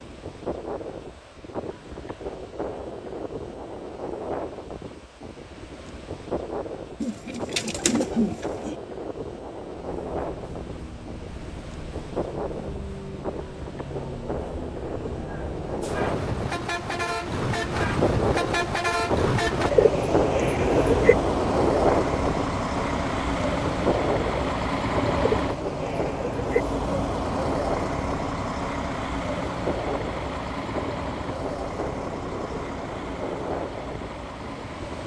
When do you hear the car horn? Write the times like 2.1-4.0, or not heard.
not heard.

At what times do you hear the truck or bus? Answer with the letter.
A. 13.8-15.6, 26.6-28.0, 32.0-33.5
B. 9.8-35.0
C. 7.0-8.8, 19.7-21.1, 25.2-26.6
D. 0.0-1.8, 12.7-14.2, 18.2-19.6
B.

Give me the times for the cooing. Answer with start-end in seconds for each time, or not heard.
7.0-8.8, 19.7-21.1, 25.2-26.6.